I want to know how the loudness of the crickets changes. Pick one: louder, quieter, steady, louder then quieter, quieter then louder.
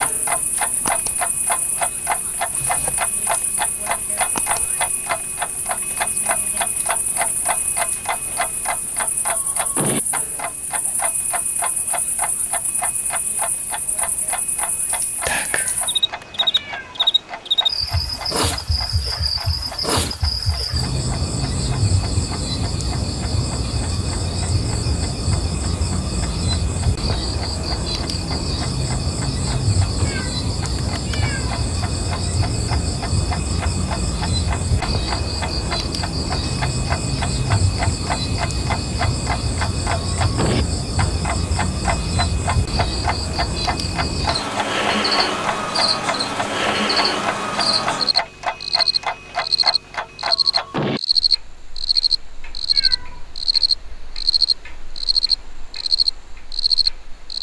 louder.